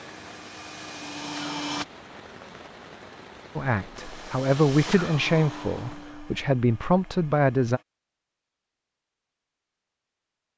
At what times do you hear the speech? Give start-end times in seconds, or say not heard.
3.5-7.8.